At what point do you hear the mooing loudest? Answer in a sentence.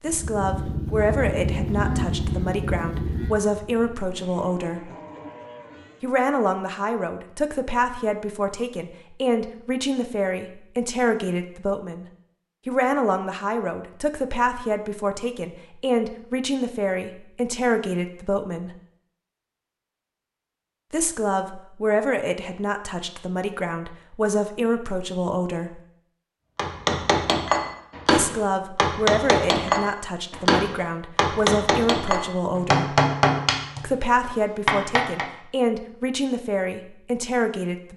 The volume of the mooing peaks at 2 seconds.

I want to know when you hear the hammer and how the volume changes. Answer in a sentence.
The hammer can be heard from 26.6 to 35.2 s, at a steady volume.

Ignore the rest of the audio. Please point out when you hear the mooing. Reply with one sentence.
The mooing can be heard from 0.1 to 6.1 s.